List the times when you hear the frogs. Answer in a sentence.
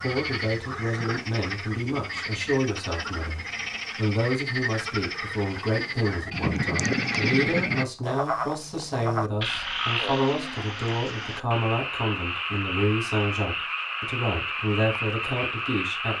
The frogs can be heard from 0.0 to 16.1 s.